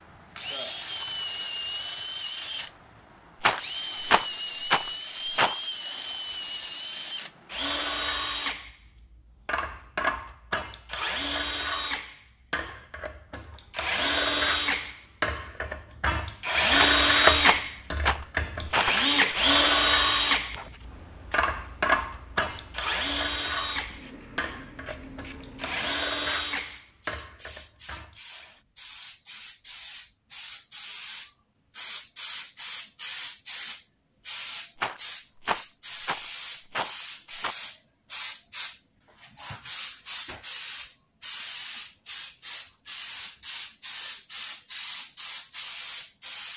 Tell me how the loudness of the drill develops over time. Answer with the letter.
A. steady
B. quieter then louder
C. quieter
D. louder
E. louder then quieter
E.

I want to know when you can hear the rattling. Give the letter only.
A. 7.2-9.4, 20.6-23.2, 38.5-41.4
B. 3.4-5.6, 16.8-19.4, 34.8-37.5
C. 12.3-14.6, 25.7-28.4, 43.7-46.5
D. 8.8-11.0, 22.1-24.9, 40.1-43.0
B.